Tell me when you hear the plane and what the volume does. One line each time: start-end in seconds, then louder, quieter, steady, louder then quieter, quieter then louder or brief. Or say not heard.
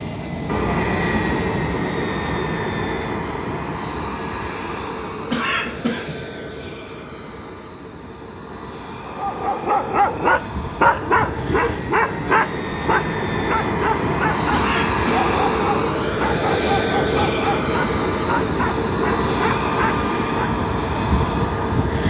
0.0-22.0 quieter then louder.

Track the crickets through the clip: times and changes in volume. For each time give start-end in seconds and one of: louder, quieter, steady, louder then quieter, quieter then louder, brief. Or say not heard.
not heard.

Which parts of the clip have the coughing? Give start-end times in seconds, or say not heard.
5.3-6.3, 14.5-15.1.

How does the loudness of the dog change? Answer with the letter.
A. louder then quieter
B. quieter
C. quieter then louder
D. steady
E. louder
B.